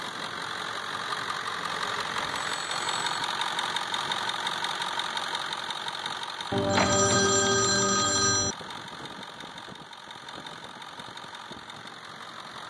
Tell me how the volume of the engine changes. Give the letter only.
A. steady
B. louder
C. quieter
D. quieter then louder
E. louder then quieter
C.